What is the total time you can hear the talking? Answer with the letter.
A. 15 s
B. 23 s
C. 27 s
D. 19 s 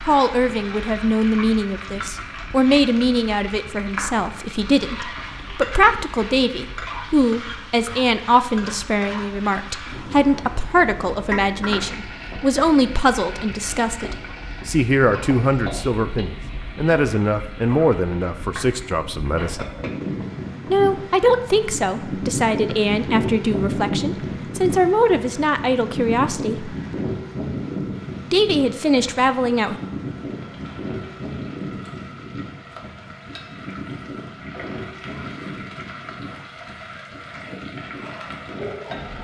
C.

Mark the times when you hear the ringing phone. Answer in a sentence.
You can't hear the ringing phone here.